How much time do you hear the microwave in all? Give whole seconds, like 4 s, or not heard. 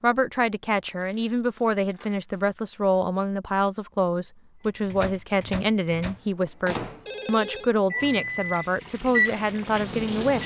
6 s.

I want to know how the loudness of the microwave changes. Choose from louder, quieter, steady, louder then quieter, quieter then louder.
louder.